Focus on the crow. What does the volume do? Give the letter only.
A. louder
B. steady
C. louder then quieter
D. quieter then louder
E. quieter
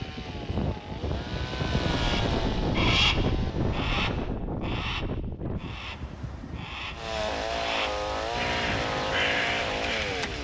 D.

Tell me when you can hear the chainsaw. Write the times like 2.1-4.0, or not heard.
0.0-4.3, 6.9-10.4.